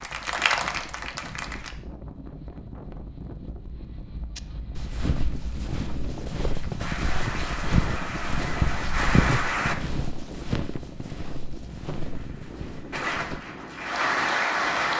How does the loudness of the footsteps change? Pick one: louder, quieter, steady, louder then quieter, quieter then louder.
louder then quieter.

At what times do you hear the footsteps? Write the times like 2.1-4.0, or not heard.
4.3-13.4.